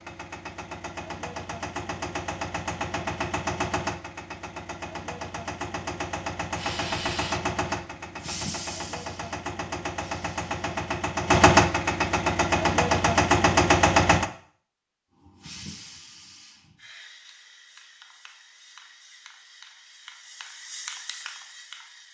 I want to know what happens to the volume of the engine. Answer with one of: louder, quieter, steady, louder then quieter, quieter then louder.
louder.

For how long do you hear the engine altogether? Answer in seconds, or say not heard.
14 s.